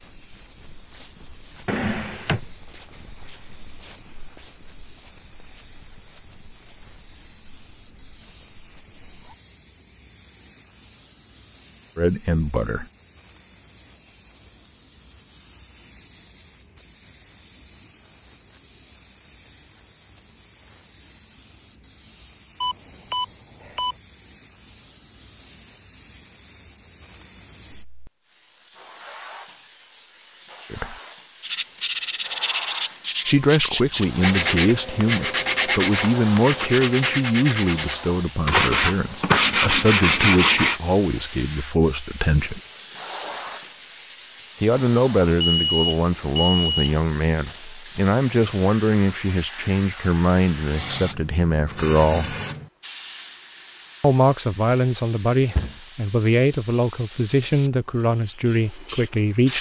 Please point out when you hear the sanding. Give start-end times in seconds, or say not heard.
31.4-40.8.